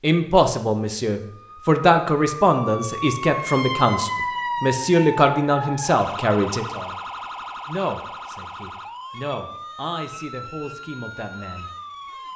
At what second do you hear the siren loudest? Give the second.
4 s.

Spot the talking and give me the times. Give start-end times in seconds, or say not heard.
0.0-7.0, 7.7-11.7.